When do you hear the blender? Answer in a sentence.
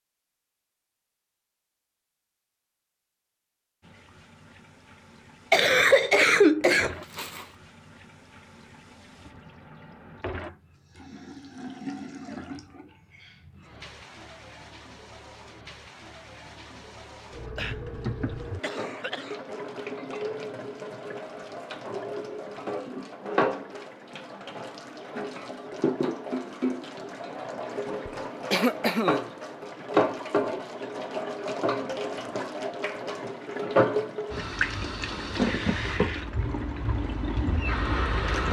You can't hear the blender here.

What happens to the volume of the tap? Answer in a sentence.
The loudness of the tap goes up.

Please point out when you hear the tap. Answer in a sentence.
The tap can be heard from 3.8 to 38.4 s.